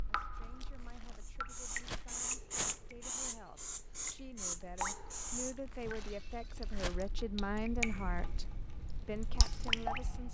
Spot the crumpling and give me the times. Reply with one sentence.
You can hear the crumpling from 0.4 to 3.0 s and from 5.3 to 7.2 s.